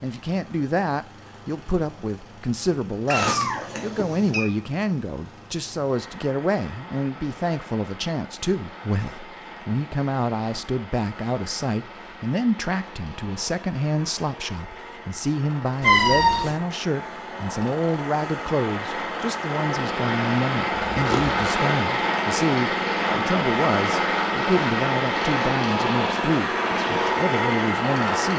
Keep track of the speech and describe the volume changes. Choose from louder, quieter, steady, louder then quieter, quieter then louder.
steady.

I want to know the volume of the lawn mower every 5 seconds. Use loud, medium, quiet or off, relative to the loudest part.
quiet, quiet, quiet, medium, loud, loud.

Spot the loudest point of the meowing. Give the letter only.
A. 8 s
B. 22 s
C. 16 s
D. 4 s
C.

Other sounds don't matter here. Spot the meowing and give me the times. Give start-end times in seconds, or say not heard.
3.0-4.5, 15.8-16.6, 20.7-21.4.